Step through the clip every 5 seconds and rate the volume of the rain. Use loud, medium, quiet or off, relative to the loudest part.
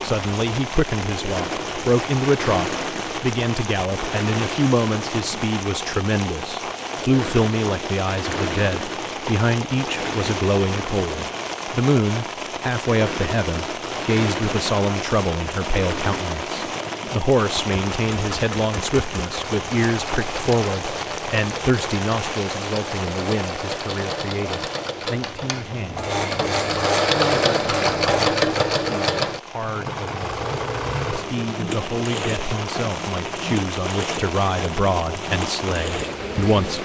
loud, loud, loud, loud, loud, medium, loud, loud.